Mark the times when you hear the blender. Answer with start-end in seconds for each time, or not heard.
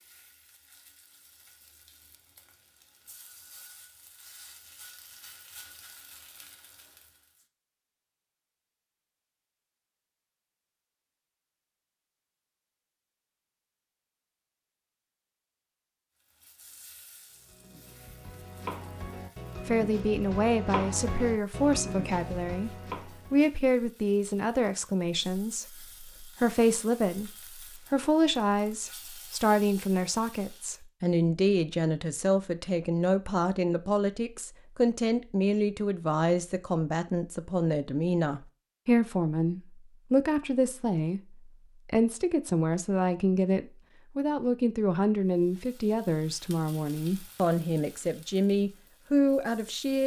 not heard.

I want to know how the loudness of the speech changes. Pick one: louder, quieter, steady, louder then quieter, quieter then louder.
steady.